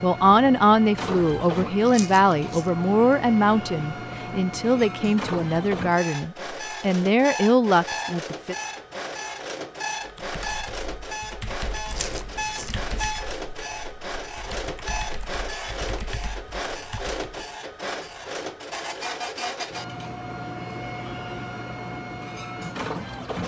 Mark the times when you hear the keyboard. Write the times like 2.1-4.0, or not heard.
10.0-17.4.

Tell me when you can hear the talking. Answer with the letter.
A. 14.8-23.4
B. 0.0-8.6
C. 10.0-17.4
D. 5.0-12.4
B.